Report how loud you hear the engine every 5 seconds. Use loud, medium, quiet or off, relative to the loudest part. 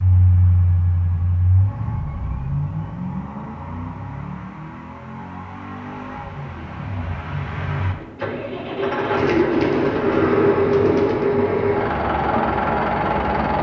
medium, medium, loud.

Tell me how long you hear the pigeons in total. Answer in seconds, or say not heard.
2 s.